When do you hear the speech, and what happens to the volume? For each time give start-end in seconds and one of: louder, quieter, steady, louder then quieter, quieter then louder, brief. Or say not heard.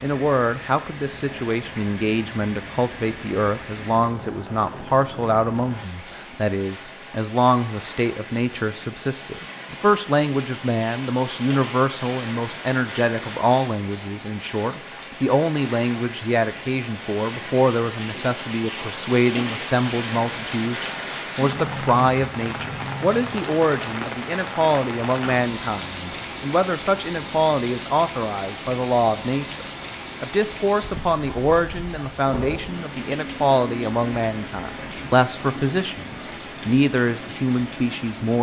0.0-38.3 steady.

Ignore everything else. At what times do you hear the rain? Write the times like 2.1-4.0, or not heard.
0.0-38.3.